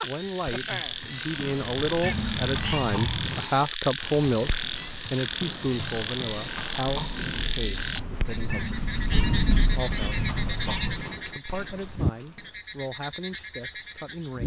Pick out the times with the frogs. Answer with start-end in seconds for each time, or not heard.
0.0-14.4.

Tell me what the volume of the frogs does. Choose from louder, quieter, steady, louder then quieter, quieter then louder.
steady.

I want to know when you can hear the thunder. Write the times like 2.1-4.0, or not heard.
7.0-11.0.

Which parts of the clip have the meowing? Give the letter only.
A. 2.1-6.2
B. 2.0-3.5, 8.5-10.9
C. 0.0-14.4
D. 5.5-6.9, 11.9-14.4
B.